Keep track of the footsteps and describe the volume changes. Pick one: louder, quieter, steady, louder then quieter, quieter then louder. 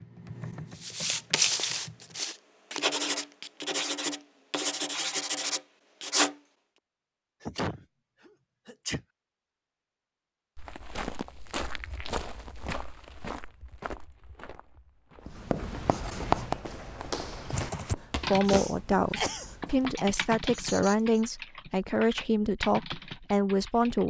quieter then louder.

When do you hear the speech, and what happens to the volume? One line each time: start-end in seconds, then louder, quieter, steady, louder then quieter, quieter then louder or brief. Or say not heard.
17.8-24.0 steady.